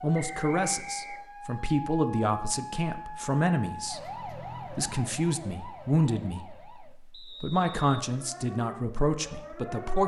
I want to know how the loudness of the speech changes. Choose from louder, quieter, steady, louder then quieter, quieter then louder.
steady.